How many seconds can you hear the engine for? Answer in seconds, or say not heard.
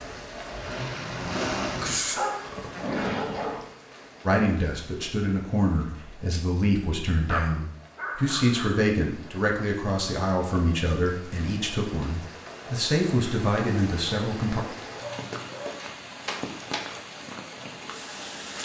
2 s.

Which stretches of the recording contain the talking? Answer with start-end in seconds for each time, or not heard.
4.2-14.6.